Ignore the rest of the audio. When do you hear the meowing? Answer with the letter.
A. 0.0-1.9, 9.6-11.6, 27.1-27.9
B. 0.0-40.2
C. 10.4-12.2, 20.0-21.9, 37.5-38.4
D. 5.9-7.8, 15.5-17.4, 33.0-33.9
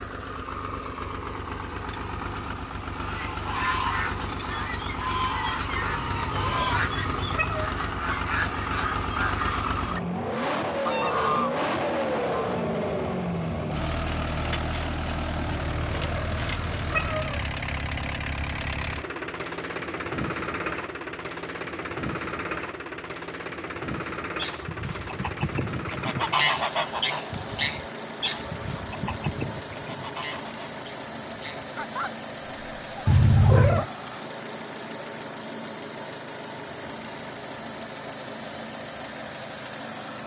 D.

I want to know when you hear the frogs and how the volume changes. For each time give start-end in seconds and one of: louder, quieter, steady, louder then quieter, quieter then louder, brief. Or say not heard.
not heard.